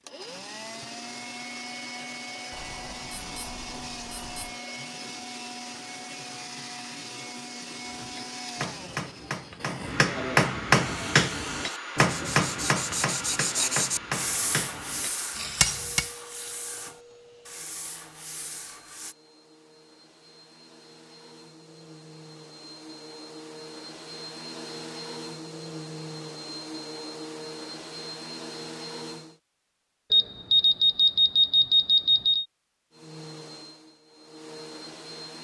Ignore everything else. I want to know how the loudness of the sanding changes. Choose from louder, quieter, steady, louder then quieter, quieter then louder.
louder then quieter.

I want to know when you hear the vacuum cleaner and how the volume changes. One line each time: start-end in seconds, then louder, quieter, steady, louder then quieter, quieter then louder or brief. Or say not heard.
0.0-29.4 quieter then louder
32.9-35.3 brief.